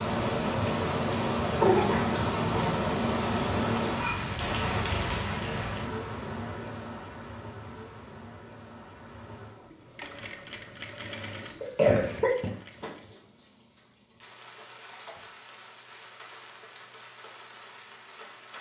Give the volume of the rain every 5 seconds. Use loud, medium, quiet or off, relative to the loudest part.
loud, medium, quiet, quiet.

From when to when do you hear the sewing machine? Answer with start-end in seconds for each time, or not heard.
9.6-13.2.